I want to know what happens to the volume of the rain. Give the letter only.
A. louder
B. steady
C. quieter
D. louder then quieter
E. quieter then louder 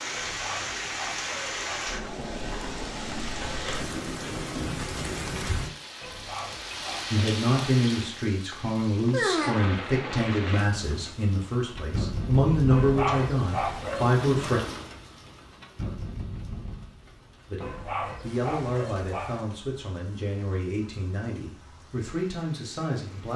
C.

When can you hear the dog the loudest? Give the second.
13 s.